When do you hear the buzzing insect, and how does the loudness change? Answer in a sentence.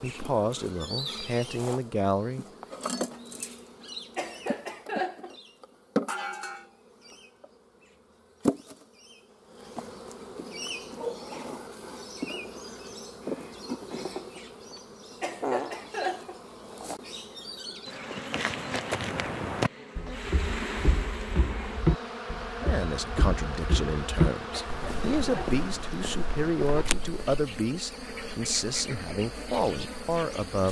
You can hear the buzzing insect from 0.0 to 30.6 s, at a steady volume.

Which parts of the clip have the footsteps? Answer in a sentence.
The footsteps can be heard from 18.3 to 27.4 s.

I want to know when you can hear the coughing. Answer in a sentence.
The coughing can be heard from 4.2 to 5.3 s, from 15.2 to 16.4 s and from 24.5 to 25.6 s.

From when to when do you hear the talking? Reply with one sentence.
You can hear the talking from 0.0 to 2.5 s and from 22.6 to 30.6 s.